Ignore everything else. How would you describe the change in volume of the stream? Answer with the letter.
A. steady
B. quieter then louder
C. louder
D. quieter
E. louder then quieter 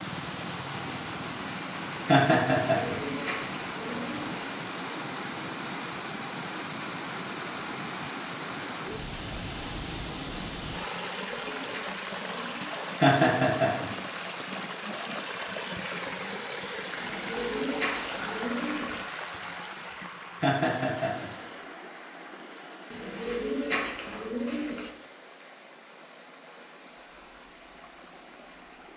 D.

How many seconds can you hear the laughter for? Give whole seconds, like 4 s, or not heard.
3 s.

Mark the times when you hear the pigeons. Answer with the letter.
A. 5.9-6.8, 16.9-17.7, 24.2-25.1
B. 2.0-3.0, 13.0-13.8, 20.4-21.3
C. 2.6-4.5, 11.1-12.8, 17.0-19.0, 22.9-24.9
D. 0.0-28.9
C.